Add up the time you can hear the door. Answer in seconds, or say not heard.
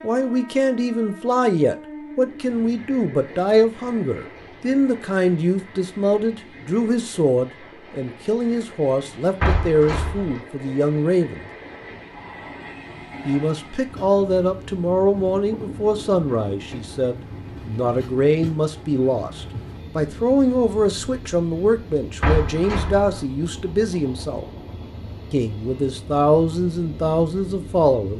2 s.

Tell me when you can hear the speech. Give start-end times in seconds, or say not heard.
0.0-11.4, 13.2-24.4, 25.3-28.1.